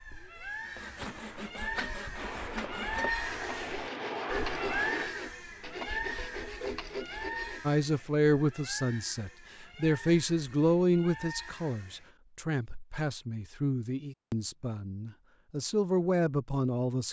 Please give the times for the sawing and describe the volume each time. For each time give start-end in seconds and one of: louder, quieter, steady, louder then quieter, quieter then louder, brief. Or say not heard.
0.7-7.6 steady.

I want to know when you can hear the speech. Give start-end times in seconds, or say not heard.
7.7-17.0.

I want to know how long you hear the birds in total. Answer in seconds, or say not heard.
12 s.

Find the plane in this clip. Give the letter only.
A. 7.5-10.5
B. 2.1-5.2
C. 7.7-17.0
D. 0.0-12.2
B.